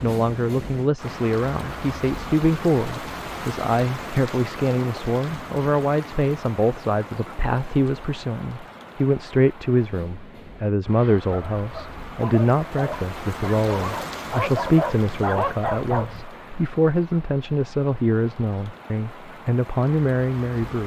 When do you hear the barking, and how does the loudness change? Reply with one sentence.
You can hear the barking from 10.9 to 16.2 s, getting louder.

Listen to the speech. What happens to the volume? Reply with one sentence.
The loudness of the speech stays about the same.